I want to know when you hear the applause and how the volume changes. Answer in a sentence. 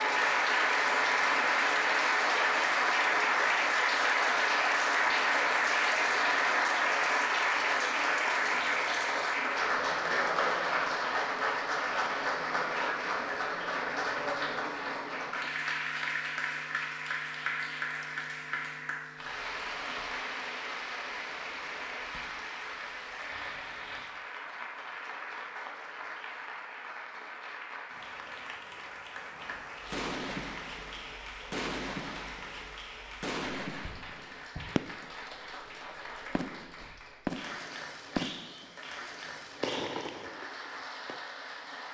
You can hear the applause from 0.0 to 41.8 s, getting quieter.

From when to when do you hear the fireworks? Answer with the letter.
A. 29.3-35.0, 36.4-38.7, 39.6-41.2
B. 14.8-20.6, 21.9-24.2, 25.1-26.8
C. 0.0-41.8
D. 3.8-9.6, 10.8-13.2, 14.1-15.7
A.